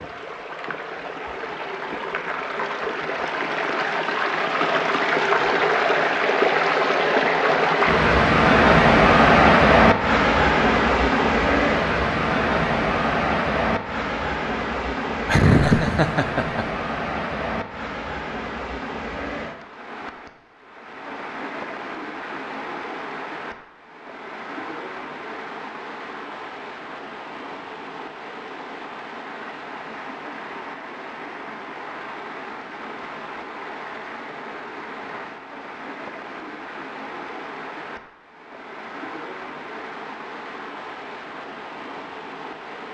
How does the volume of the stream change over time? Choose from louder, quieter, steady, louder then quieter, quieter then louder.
quieter.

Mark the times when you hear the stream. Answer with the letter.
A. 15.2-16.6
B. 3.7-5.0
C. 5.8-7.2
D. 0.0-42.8
D.